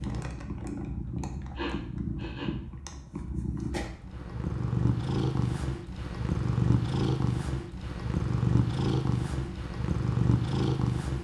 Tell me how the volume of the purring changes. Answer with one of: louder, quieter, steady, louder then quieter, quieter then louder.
louder.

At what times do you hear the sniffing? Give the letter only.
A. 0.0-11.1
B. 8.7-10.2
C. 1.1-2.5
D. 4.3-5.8
C.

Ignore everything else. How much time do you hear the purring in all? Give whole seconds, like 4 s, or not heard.
11 s.